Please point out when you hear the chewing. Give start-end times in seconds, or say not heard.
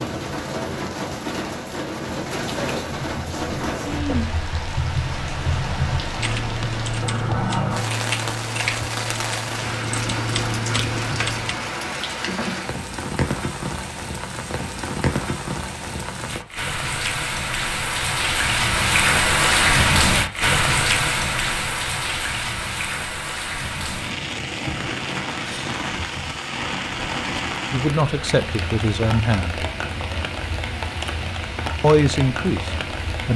not heard.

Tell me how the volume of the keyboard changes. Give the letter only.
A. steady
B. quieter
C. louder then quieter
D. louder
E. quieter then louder
D.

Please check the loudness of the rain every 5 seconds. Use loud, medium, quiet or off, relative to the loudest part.
medium, medium, medium, loud, loud, medium, medium.